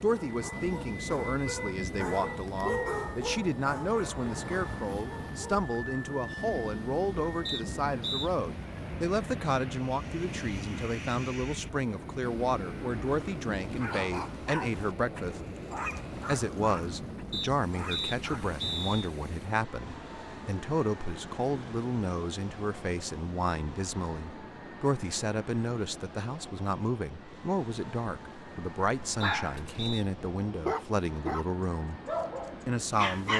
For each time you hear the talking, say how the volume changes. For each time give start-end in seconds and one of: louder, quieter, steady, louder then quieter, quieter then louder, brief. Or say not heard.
0.0-15.4 steady
16.2-32.0 steady
32.6-33.3 brief.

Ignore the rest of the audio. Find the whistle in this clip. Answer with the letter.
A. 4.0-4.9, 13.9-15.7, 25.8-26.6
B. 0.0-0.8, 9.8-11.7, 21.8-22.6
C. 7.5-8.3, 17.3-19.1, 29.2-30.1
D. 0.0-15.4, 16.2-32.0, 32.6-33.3
C.